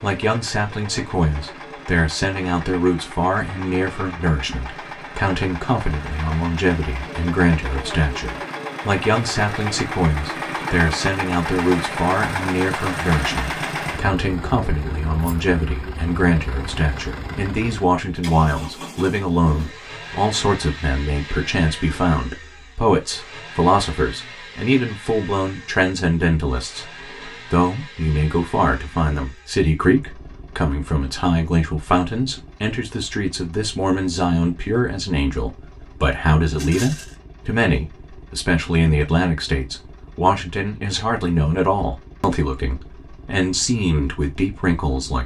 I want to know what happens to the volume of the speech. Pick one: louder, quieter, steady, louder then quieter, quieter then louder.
steady.